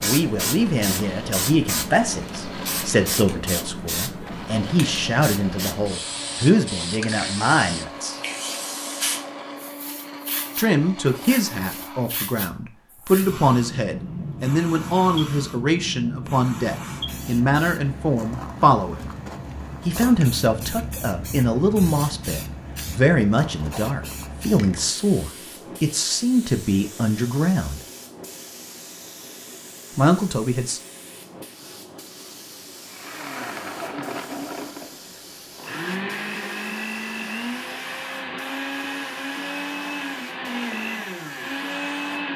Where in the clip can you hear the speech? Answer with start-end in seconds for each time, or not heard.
0.0-8.2, 10.6-19.1, 19.9-27.8, 29.9-30.8.